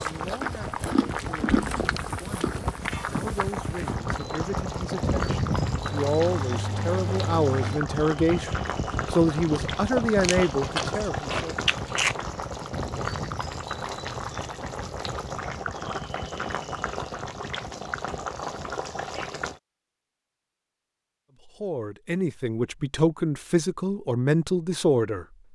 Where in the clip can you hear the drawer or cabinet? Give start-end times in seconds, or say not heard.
not heard.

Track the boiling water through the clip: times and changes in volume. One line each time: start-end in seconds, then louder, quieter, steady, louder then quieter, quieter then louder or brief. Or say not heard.
0.0-19.6 steady.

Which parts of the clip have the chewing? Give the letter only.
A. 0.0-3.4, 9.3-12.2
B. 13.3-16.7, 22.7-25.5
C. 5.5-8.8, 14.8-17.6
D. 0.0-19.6
A.